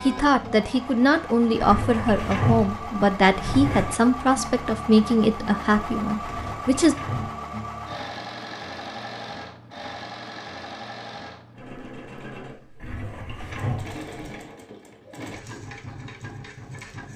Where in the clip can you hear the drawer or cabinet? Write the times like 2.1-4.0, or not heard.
1.6-4.0, 6.2-7.3, 12.8-14.4.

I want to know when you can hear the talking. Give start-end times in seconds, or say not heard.
0.0-7.0.